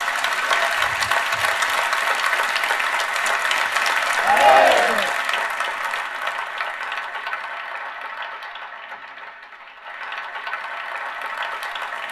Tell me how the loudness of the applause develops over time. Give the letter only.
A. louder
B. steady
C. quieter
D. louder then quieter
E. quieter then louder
C.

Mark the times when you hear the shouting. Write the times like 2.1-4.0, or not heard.
4.2-5.1.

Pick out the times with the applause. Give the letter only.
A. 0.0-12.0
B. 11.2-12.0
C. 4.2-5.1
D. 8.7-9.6
A.